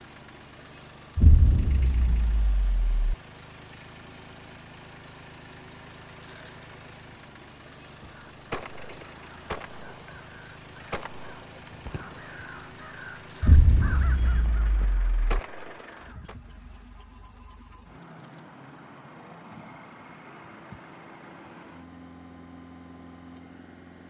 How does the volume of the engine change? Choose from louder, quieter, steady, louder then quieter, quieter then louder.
steady.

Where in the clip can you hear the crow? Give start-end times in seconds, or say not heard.
8.0-16.4.